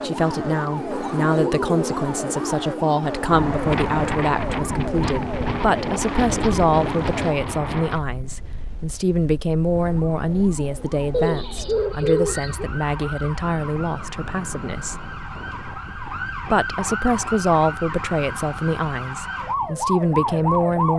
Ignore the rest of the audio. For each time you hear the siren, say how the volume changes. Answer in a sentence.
You can hear the siren from 0.0 to 7.5 s, at a steady volume; and from 9.7 to 20.9 s, getting louder.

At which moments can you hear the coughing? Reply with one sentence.
You can't hear the coughing here.